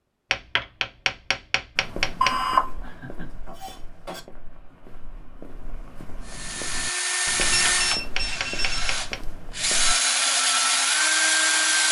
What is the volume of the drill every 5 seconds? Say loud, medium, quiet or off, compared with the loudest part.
off, medium, loud.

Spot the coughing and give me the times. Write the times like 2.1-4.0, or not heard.
not heard.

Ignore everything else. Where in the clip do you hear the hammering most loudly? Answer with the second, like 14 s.
2 s.